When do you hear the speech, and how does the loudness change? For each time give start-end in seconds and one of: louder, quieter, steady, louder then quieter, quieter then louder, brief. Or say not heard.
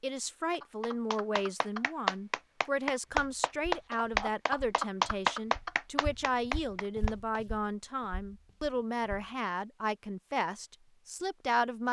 0.0-11.8 steady.